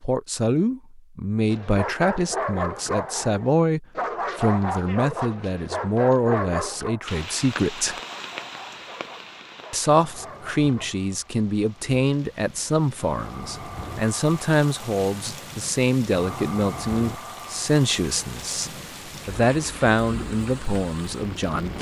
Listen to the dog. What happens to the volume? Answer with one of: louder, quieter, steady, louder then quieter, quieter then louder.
quieter.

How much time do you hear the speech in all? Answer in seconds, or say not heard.
20 s.